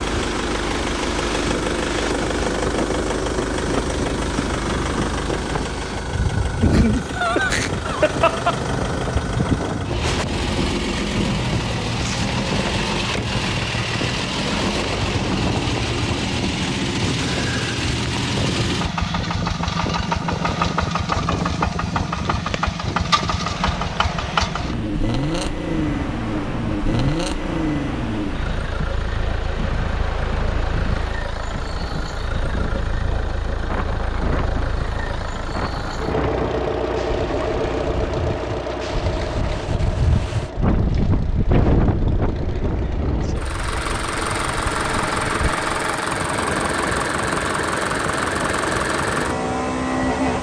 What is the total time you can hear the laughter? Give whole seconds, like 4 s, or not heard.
2 s.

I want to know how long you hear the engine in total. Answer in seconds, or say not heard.
50 s.